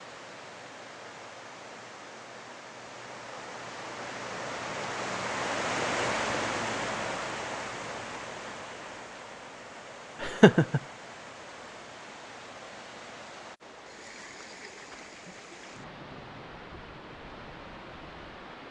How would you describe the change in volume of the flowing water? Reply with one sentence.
The volume of the flowing water goes up, then down.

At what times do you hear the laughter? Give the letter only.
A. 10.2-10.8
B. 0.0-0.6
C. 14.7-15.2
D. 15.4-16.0
A.